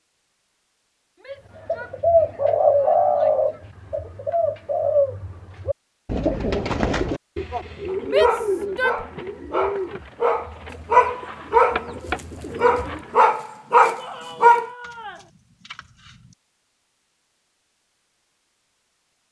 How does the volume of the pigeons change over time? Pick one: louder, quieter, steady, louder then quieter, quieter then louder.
quieter.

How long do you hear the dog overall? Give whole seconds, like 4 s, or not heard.
7 s.